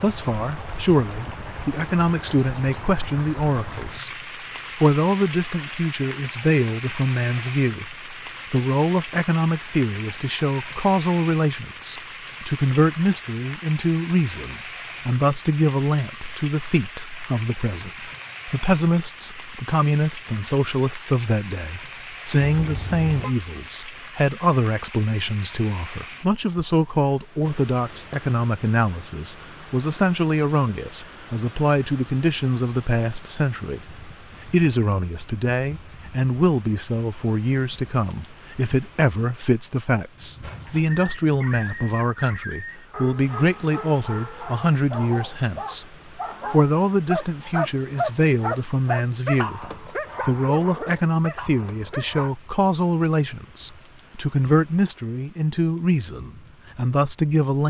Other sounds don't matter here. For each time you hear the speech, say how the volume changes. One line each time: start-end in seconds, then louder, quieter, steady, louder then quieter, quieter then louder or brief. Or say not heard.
0.0-4.2 quieter then louder
4.8-45.9 steady
46.5-57.6 steady.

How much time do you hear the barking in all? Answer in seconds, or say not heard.
12 s.